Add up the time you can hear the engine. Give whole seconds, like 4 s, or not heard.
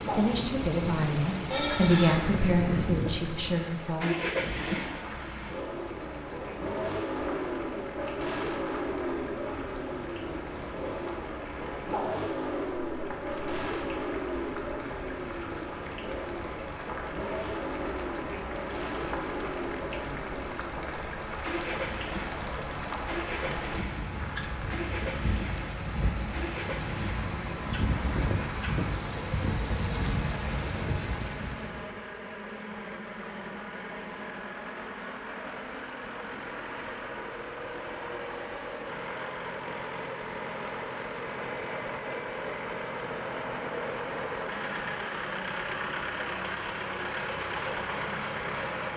49 s.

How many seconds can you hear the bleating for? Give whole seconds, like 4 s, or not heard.
2 s.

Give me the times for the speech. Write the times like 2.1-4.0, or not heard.
0.0-4.1.